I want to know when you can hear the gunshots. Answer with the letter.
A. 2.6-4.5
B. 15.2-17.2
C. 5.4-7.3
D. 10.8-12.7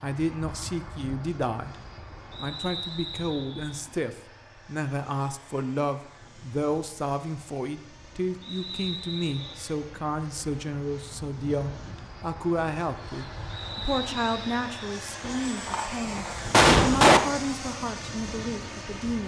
B.